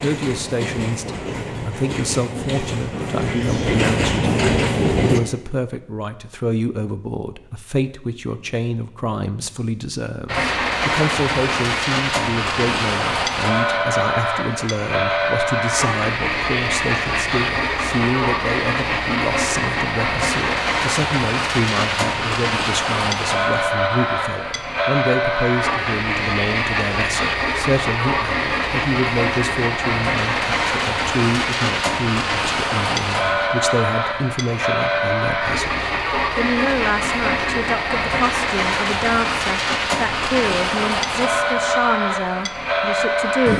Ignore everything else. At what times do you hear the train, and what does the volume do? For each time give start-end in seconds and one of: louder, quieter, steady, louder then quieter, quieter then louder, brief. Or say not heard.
0.0-5.2 louder
10.2-43.5 steady.